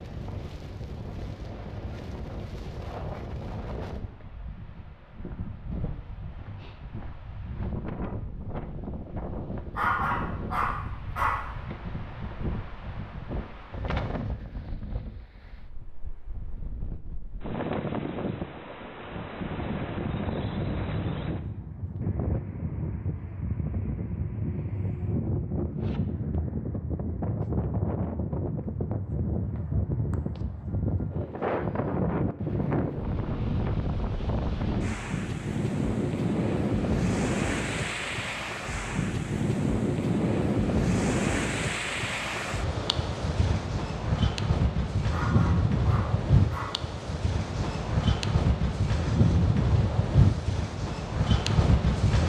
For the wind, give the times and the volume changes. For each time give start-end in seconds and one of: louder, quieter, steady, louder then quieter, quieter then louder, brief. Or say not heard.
0.0-52.2 louder.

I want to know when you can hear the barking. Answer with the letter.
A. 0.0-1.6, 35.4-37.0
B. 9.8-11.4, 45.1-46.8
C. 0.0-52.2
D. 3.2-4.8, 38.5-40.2
B.